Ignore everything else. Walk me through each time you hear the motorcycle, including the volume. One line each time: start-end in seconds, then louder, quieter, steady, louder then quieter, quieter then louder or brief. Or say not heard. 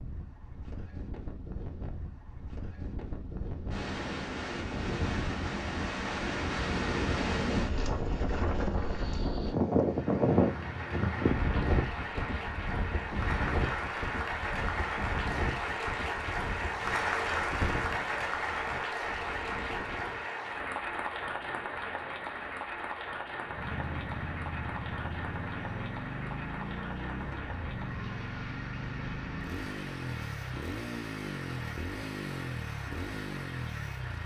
23.4-34.2 steady.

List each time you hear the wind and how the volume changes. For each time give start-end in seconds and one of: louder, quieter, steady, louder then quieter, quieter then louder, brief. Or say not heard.
0.0-20.2 louder then quieter.